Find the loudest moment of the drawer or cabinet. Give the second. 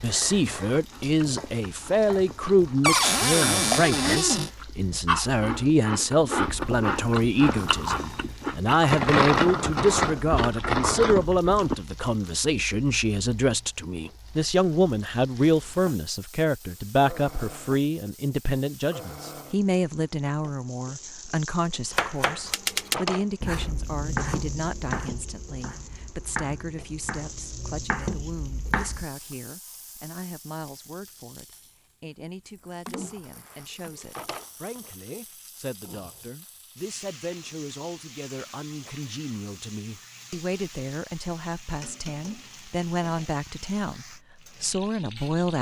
3 s.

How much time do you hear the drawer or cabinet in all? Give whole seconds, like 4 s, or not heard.
3 s.